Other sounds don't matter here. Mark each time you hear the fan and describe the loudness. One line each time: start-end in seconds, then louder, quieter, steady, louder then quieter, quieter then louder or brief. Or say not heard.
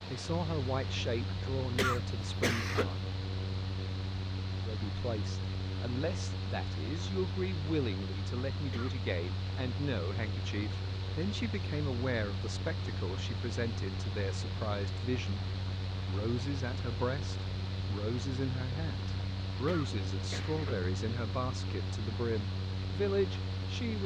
0.0-24.0 steady.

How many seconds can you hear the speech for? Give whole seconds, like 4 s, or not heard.
22 s.